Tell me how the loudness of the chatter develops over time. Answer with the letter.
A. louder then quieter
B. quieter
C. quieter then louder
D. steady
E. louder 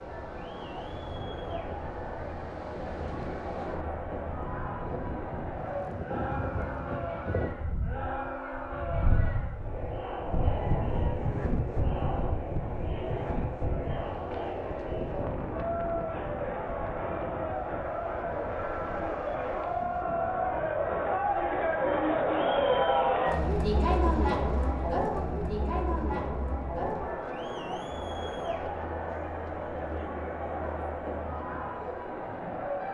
A.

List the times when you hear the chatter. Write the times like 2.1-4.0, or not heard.
0.0-32.8.